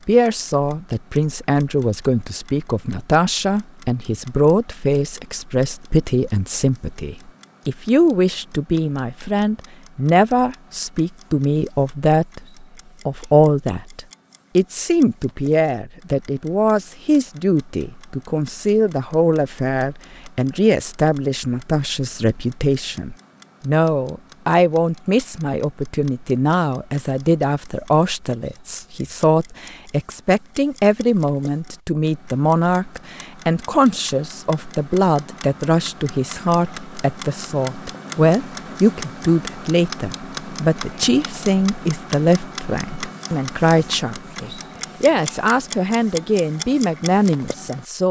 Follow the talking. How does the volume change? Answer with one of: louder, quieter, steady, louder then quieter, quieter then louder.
steady.